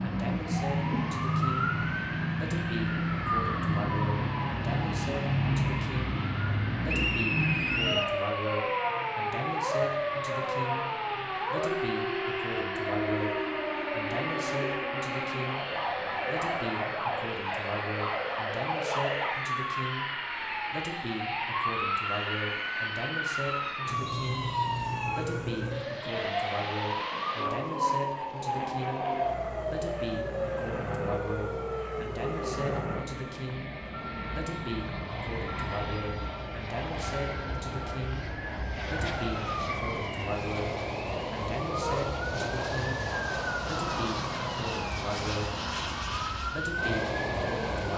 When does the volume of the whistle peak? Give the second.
8 s.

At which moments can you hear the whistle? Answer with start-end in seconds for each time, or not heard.
6.8-8.2, 24.1-24.8, 39.6-40.3.